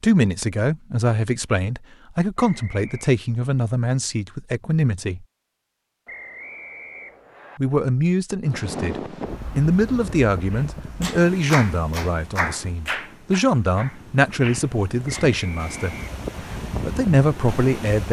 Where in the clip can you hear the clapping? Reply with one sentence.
You can hear the clapping from 10.5 to 15.3 s.